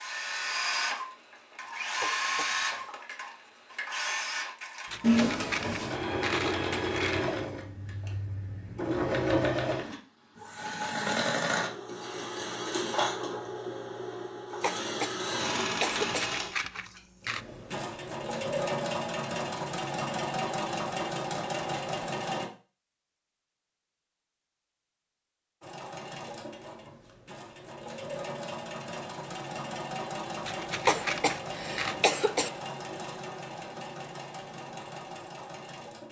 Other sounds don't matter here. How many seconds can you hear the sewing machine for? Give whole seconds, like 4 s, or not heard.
33 s.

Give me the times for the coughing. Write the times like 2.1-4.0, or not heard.
2.0-2.9, 14.6-16.3, 30.9-32.5.